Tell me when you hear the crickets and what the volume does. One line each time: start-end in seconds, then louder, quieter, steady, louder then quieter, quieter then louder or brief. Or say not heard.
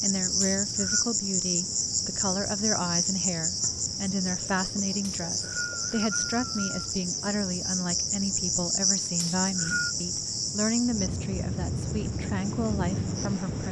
0.0-13.6 quieter.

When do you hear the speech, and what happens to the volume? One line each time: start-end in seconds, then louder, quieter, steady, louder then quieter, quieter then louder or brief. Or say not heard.
0.0-13.6 steady.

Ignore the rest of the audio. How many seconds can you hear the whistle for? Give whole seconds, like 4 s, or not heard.
3 s.